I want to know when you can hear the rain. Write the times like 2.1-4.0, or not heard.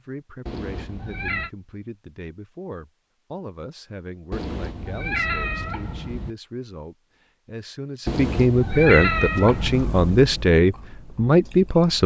not heard.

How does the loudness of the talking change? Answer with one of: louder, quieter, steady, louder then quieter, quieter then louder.
louder.